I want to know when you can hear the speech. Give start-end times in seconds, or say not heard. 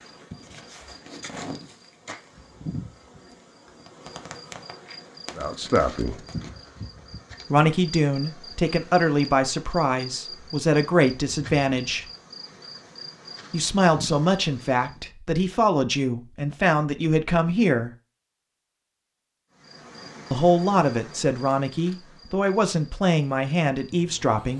5.3-6.2, 7.5-12.1, 13.5-17.9, 20.3-24.5.